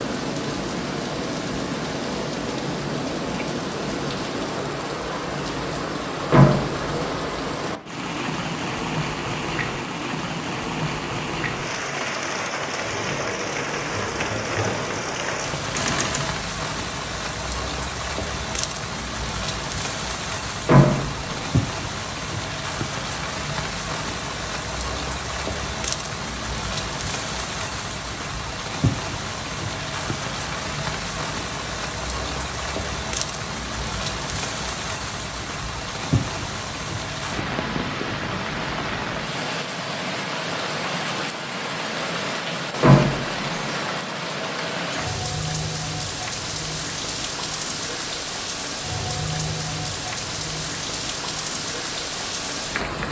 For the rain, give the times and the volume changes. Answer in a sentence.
The rain can be heard from 0.0 to 53.0 s, at a steady volume.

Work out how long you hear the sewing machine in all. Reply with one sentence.
You can hear the sewing machine for 4 seconds altogether.